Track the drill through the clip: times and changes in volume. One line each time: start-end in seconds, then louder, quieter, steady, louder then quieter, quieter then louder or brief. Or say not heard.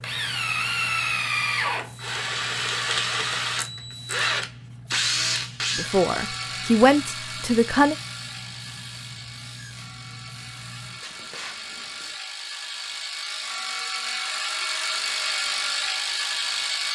0.0-16.8 quieter then louder.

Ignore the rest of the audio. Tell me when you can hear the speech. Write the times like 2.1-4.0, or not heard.
5.8-8.0.